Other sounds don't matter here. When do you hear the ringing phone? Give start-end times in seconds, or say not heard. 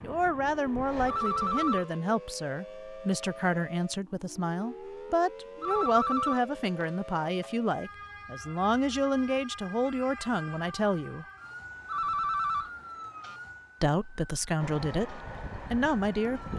1.1-1.9, 5.6-7.5, 11.8-12.7.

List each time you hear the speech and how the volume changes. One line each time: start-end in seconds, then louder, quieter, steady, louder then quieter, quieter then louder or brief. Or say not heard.
0.0-11.2 steady
13.8-16.4 brief.